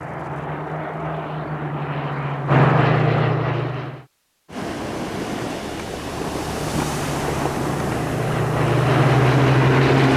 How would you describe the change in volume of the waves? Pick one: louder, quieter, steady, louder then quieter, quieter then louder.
steady.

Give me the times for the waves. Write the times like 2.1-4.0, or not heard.
4.5-10.1.